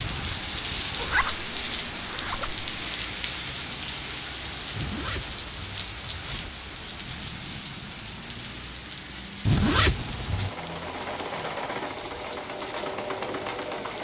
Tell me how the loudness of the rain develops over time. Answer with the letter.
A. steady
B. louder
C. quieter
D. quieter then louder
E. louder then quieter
C.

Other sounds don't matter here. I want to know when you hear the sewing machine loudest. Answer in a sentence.
The loudest moment of the sewing machine is at 13 seconds.